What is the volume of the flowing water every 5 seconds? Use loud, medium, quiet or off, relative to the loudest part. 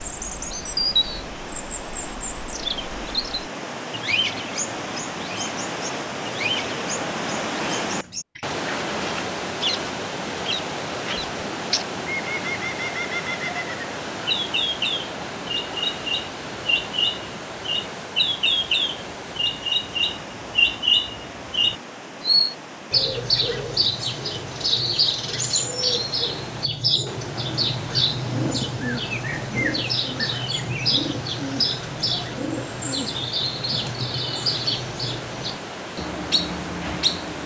medium, loud, loud, medium, medium, medium, medium, medium.